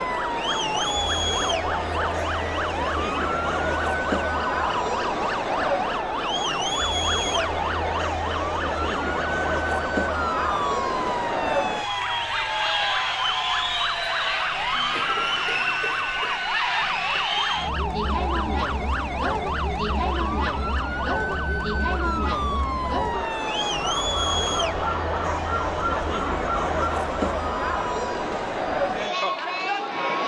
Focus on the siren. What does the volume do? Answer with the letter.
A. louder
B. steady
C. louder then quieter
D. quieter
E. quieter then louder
B.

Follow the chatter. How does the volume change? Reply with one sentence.
The volume of the chatter stays about the same.